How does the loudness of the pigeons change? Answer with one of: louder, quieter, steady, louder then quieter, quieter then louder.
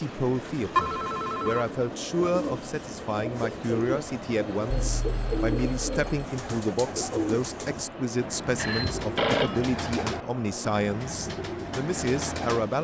steady.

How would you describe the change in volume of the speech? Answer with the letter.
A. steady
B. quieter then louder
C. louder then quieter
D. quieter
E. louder
A.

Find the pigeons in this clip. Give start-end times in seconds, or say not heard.
2.1-12.7.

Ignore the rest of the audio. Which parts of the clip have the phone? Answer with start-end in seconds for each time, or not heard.
0.8-1.6, 4.7-6.2, 8.6-9.6.